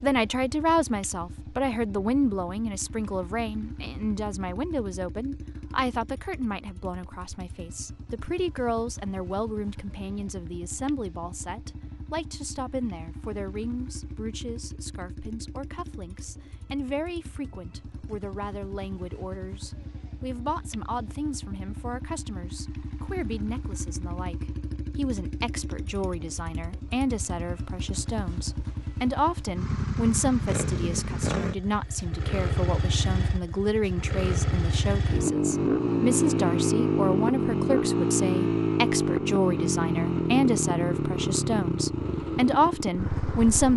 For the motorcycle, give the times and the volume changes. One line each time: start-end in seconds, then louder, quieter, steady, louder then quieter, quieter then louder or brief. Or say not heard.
0.0-43.7 louder.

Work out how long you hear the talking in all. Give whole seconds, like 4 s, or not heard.
44 s.